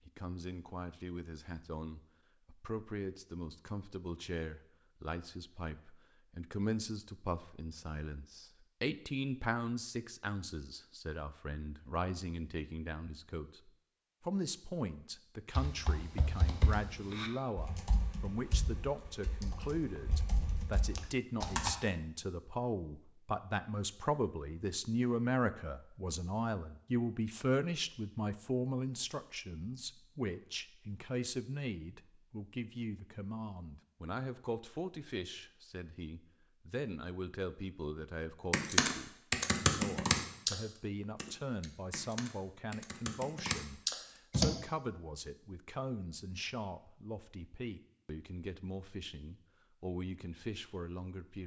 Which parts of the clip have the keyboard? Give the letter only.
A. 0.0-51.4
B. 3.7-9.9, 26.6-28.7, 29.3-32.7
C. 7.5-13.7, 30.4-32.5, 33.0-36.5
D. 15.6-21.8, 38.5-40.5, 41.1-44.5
D.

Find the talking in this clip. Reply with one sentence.
You can hear the talking from 0.0 to 51.4 s.